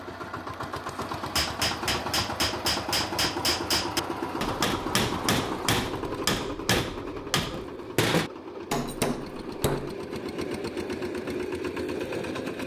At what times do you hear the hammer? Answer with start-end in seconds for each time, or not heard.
1.2-9.9.